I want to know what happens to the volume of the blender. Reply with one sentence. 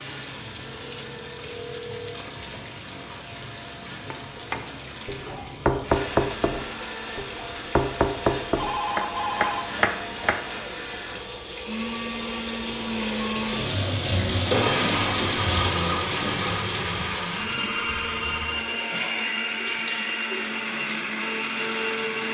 The loudness of the blender goes up.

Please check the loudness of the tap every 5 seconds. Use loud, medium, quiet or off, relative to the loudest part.
medium, medium, loud, loud, medium.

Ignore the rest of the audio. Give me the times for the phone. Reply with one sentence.
The phone can be heard from 0.7 to 2.1 s, from 8.6 to 9.7 s and from 17.8 to 18.6 s.